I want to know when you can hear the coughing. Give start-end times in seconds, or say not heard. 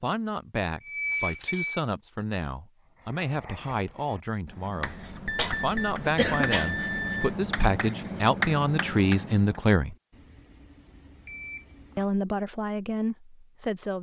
5.3-6.8.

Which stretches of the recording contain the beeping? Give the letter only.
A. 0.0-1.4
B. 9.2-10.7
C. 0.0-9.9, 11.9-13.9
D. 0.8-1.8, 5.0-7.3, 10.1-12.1
D.